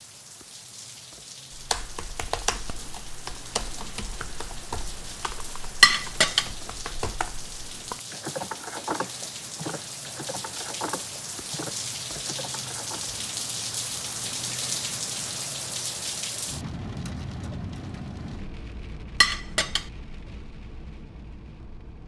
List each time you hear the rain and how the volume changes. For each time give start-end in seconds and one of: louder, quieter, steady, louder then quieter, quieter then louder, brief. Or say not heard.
0.0-22.0 louder then quieter.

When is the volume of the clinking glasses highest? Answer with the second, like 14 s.
6 s.